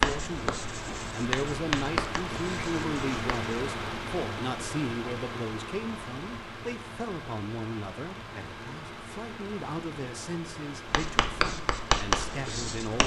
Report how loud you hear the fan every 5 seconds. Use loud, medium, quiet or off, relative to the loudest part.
loud, medium, medium.